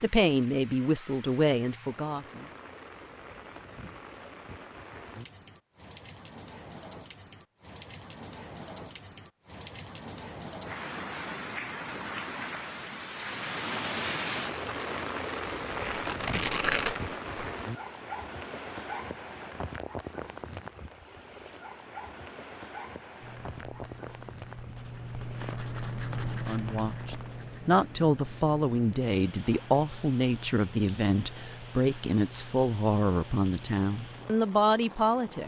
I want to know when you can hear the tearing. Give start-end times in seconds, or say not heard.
15.7-17.4.